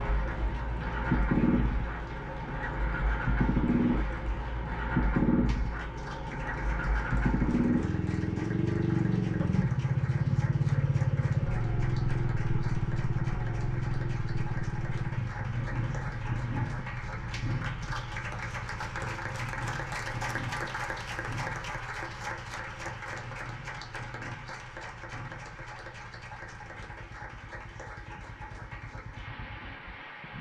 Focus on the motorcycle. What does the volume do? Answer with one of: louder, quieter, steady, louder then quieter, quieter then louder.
quieter.